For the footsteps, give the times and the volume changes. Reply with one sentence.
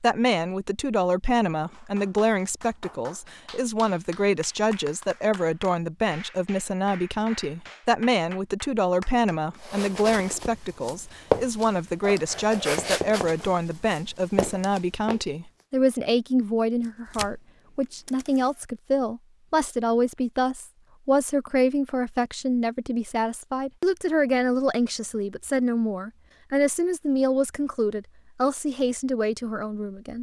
The footsteps can be heard from 9.6 to 15.2 s, getting louder then quieter.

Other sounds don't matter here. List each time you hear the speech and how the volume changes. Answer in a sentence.
The speech can be heard from 0.0 to 30.1 s, at a steady volume.